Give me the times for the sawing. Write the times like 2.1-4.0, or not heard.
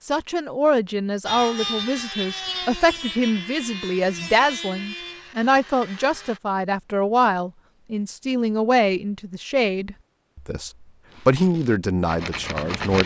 1.2-6.4, 11.1-13.0.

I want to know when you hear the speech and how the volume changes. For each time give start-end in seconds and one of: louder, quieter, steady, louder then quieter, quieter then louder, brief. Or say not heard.
0.1-13.0 steady.